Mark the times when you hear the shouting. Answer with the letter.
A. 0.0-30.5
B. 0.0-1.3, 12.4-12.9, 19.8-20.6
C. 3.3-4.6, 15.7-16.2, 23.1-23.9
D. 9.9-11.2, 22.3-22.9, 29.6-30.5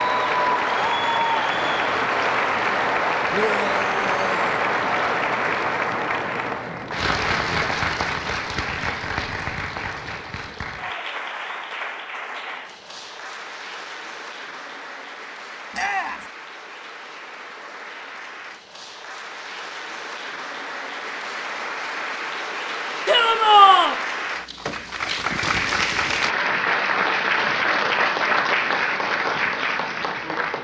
C.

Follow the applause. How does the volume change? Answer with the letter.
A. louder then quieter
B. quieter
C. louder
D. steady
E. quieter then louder
E.